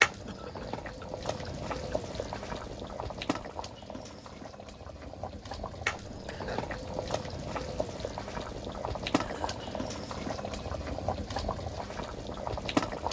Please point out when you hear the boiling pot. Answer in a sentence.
The boiling pot can be heard from 0.0 to 13.0 s.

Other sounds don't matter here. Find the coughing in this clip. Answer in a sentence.
You can hear the coughing from 0.2 to 2.4 s, from 6.1 to 6.8 s and from 9.2 to 9.9 s.